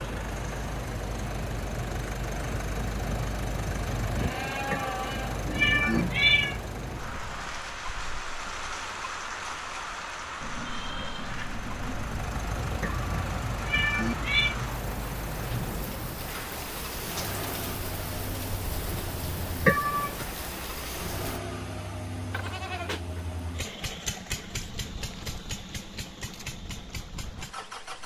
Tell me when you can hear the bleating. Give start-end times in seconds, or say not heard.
4.1-5.5, 10.4-11.9, 22.3-23.8.